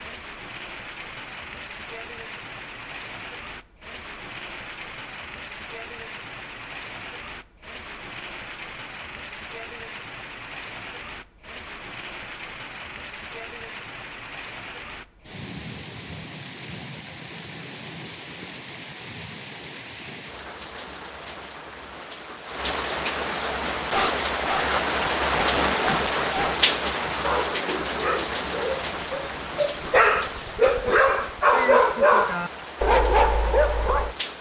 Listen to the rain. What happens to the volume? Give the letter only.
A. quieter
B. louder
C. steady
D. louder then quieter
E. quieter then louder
D.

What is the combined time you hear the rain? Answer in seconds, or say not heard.
34 s.